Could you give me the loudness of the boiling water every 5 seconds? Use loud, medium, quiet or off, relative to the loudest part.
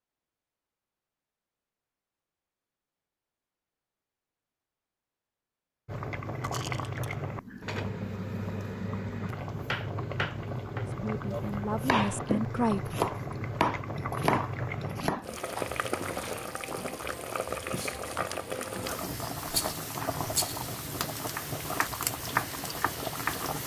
off, loud, loud, loud, loud.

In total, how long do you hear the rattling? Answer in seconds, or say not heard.
2 s.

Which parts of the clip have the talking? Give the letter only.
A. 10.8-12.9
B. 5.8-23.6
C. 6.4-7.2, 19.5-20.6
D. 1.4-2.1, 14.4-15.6
A.